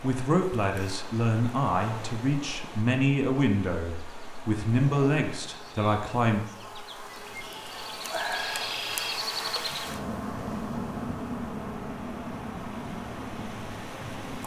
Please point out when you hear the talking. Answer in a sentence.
You can hear the talking from 0.0 to 6.5 s.